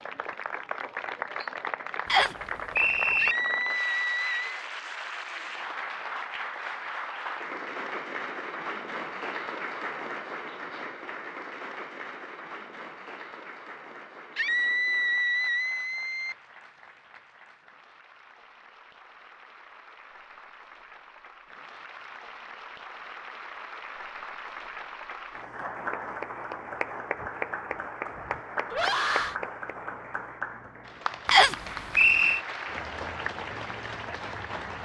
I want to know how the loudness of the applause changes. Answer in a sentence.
The loudness of the applause goes down, then up.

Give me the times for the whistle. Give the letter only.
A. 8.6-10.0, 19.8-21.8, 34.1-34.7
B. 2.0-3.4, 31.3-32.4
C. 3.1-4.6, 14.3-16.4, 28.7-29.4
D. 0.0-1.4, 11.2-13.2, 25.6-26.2
B.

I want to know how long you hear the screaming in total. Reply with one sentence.
The screaming can be heard for 4 seconds in total.